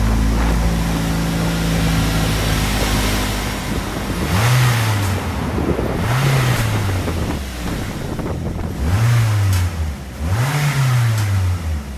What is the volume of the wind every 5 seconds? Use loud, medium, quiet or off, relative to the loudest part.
loud, loud, off.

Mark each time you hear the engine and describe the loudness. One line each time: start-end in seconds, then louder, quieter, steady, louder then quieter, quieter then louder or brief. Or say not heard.
0.0-11.9 steady.